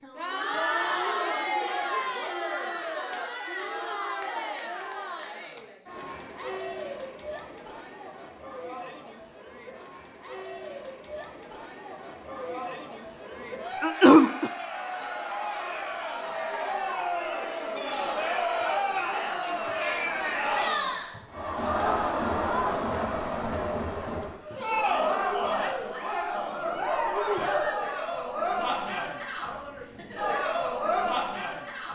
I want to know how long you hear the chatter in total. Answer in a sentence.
The chatter can be heard for 32 seconds in total.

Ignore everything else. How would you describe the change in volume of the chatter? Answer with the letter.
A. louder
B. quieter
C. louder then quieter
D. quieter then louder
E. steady
D.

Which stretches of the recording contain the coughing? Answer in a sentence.
You can hear the coughing from 13.8 to 14.5 s.